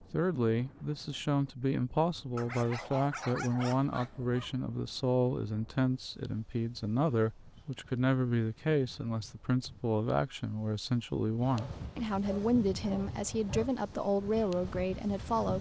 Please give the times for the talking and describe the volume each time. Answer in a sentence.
You can hear the talking from 0.0 to 15.5 s, at a steady volume.